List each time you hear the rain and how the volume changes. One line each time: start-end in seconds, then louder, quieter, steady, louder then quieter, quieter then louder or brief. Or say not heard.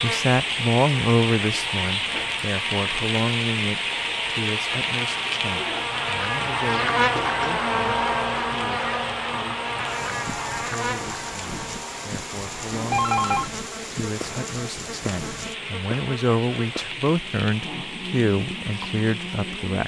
0.0-19.8 quieter.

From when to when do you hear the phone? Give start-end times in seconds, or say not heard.
12.7-13.5.